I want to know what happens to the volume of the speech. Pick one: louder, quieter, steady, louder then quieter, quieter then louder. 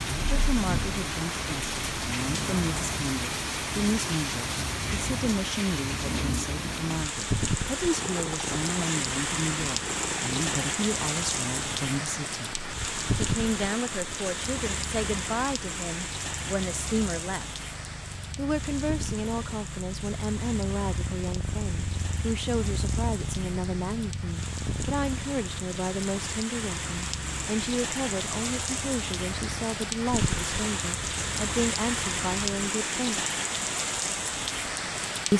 steady.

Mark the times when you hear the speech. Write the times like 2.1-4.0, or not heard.
0.0-12.6, 13.2-17.4, 18.4-33.3.